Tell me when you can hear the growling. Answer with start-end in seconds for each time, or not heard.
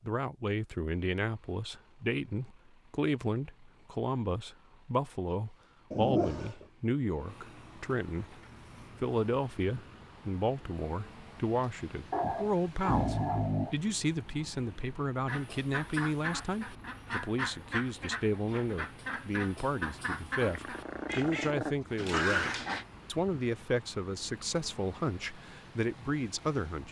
5.9-6.7, 12.1-13.8, 20.4-22.9.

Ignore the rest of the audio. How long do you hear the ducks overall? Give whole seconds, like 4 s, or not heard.
6 s.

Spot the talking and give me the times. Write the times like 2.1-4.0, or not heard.
0.0-8.4, 9.0-26.8.